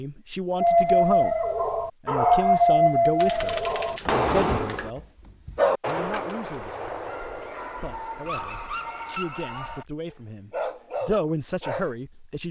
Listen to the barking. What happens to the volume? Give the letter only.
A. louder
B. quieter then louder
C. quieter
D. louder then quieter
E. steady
C.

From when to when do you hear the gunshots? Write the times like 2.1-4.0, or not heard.
3.2-4.9.